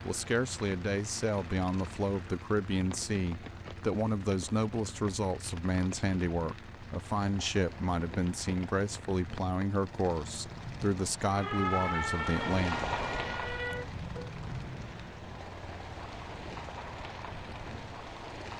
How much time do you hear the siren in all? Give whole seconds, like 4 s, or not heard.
3 s.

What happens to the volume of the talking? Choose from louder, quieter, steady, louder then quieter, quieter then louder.
steady.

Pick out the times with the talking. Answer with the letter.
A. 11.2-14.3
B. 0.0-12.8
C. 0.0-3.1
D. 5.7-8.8
B.